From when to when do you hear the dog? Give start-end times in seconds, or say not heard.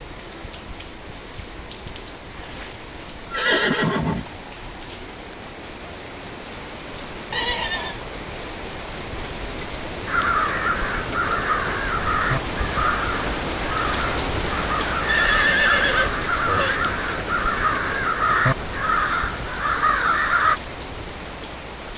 not heard.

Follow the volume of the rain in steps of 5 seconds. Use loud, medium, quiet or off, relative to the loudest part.
medium, medium, loud, loud, medium.